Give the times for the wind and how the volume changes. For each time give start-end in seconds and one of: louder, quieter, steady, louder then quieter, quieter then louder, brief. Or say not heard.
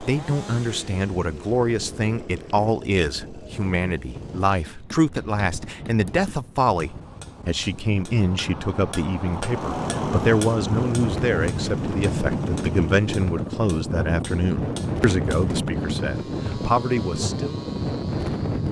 0.0-18.6 louder.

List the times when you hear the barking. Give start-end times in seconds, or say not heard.
not heard.